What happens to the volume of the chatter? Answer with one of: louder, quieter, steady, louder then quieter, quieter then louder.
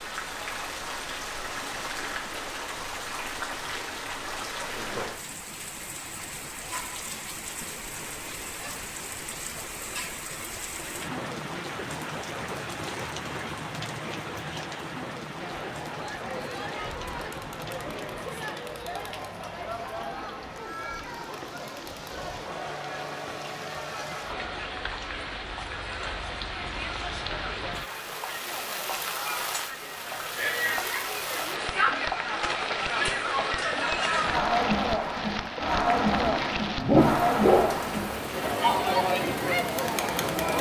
louder.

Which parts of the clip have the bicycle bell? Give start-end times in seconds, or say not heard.
not heard.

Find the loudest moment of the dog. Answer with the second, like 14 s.
37 s.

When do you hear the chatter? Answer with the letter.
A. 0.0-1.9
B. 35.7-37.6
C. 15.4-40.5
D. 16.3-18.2
C.